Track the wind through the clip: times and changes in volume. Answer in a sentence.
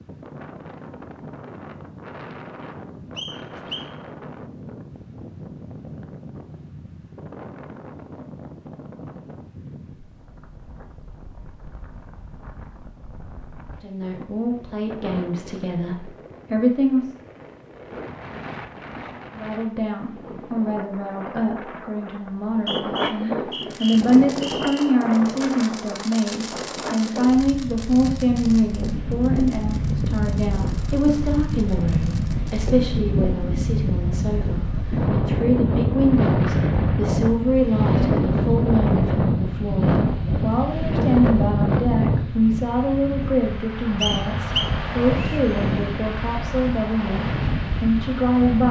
You can hear the wind from 0.0 to 48.6 s, getting louder.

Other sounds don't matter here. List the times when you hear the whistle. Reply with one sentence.
The whistle can be heard from 3.1 to 3.9 s, from 22.4 to 24.9 s and from 44.0 to 45.4 s.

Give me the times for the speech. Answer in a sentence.
You can hear the speech from 13.8 to 17.1 s and from 19.4 to 48.6 s.